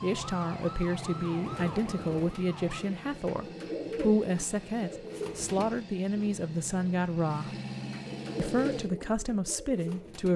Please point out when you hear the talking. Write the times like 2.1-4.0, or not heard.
0.0-7.5, 8.3-10.3.